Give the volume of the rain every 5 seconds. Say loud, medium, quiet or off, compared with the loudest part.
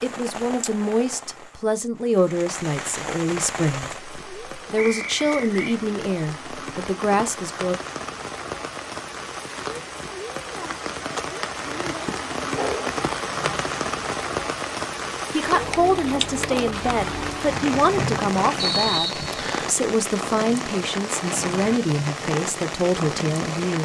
medium, medium, loud, loud, loud.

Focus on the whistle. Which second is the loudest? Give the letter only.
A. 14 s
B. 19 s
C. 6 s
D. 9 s
B.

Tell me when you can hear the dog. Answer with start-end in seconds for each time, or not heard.
12.1-13.0.